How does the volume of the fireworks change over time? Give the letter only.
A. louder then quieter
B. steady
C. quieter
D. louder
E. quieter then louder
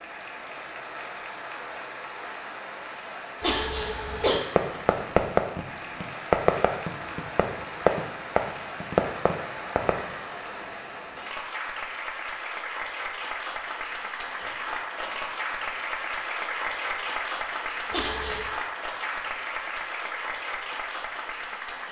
E.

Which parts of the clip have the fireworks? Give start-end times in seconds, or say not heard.
4.3-10.2.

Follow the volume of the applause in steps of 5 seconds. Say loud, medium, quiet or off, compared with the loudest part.
medium, medium, loud, loud, loud.